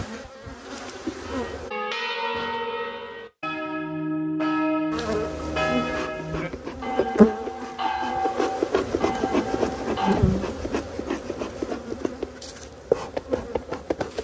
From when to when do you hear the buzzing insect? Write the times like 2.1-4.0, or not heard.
0.0-1.7, 4.9-14.2.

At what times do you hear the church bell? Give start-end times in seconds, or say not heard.
1.2-10.2.